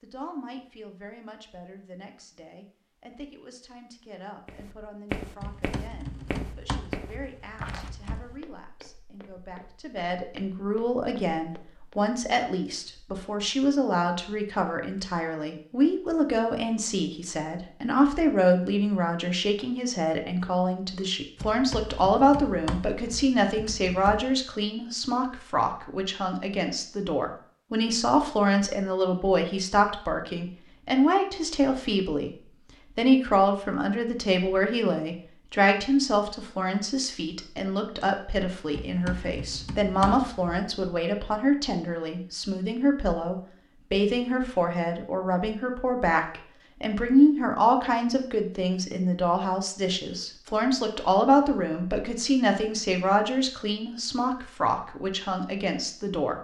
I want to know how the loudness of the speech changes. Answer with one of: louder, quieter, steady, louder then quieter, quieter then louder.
louder.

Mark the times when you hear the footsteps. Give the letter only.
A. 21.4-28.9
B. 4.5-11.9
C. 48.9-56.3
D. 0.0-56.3
B.